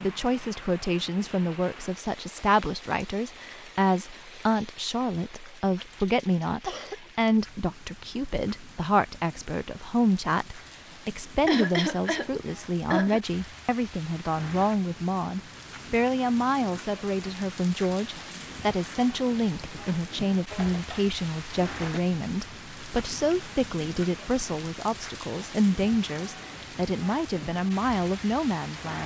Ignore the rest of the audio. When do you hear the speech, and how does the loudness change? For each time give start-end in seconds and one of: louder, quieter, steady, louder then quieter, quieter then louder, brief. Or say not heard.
0.0-29.0 steady.